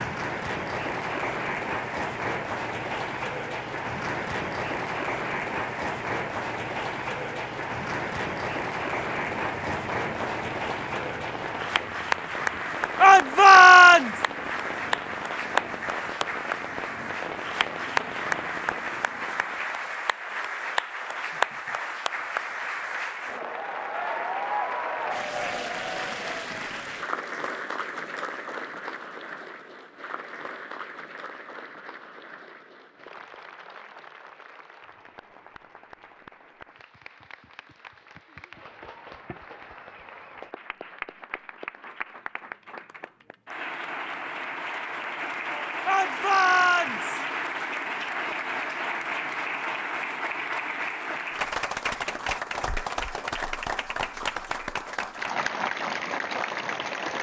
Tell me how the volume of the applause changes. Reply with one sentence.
The volume of the applause goes down, then up.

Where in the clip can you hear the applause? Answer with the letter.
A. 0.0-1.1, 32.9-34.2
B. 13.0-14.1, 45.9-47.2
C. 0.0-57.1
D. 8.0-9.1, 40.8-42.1
C.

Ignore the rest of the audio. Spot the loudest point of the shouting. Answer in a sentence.
The loudest moment of the shouting is at 14 seconds.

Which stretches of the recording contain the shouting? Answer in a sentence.
You can hear the shouting from 13.0 to 14.1 s and from 45.9 to 47.2 s.